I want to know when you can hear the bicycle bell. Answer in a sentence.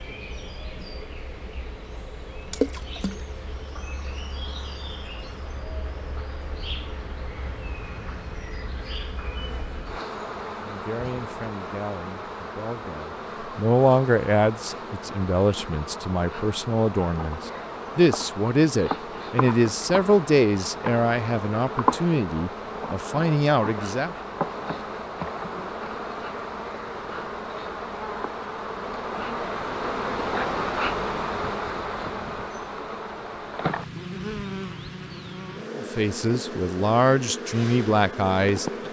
You can't hear the bicycle bell here.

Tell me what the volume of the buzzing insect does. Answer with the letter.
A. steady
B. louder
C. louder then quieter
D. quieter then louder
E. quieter
B.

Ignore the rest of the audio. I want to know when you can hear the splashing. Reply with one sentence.
You can hear the splashing from 2.5 to 3.2 s.